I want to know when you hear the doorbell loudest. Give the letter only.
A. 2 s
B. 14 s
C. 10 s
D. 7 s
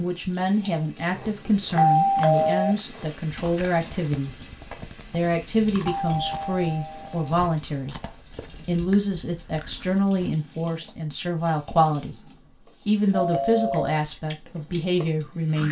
A.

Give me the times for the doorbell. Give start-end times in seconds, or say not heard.
1.8-2.8, 5.8-7.5, 13.1-13.9.